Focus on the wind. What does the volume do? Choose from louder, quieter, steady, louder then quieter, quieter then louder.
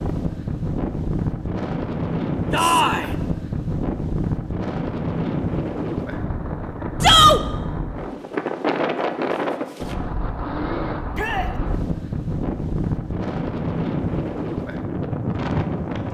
steady.